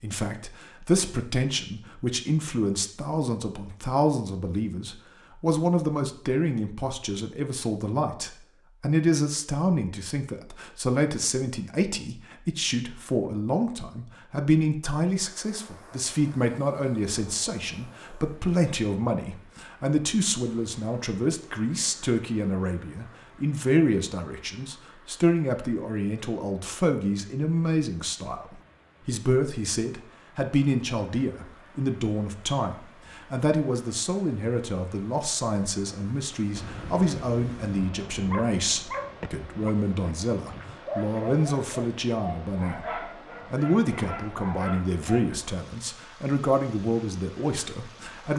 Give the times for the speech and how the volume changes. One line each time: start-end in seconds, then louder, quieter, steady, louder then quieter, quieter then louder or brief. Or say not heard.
0.0-48.3 steady.